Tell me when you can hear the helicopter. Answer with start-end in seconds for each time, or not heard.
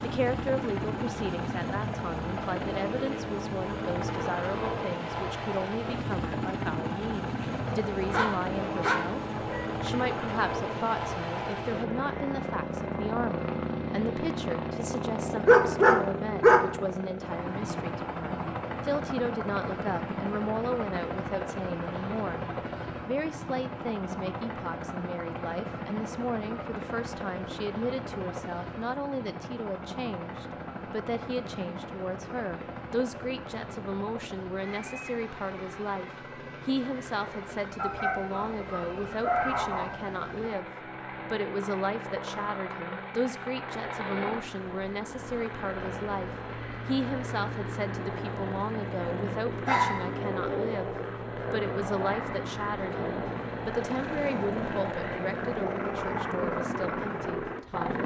0.0-58.0.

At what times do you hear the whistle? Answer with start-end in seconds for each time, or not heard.
not heard.